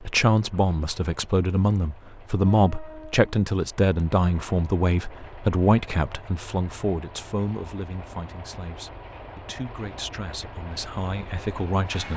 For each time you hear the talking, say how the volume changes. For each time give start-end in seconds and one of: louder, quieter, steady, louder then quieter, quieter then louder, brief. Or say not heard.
0.0-12.1 quieter.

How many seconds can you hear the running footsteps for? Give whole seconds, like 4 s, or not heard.
not heard.